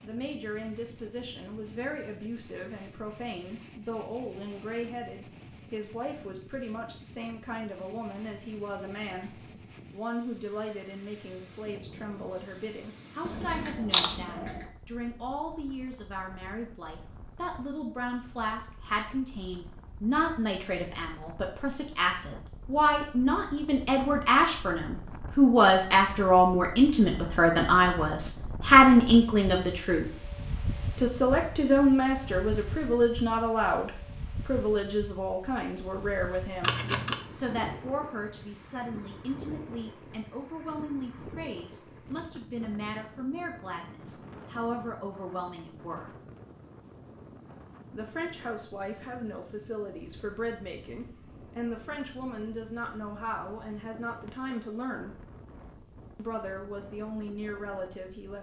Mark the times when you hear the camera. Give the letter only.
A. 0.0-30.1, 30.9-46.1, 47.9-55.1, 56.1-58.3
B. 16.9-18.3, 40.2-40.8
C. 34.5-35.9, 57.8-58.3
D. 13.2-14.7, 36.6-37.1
D.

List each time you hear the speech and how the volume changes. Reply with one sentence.
You can hear the speech from 0.0 to 30.1 s, getting louder; from 30.9 to 46.1 s, getting quieter; from 47.9 to 55.1 s, at a steady volume; and briefly from 56.1 to 58.3 s.